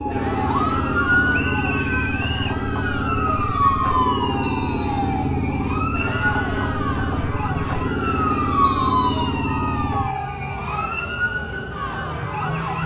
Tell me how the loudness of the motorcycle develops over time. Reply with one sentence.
The loudness of the motorcycle stays about the same.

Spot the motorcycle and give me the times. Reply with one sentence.
You can hear the motorcycle from 0.0 to 10.2 s.